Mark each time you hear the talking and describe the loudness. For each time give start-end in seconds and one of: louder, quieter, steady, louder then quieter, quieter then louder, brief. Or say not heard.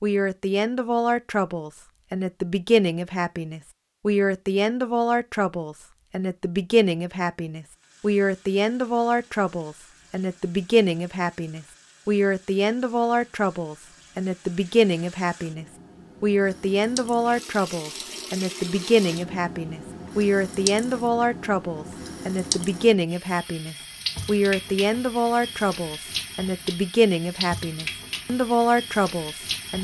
0.0-29.8 steady.